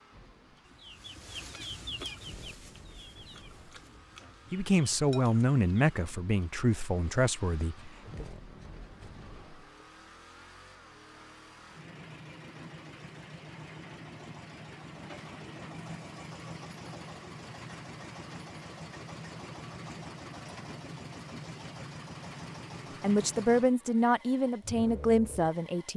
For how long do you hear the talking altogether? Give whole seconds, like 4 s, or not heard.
7 s.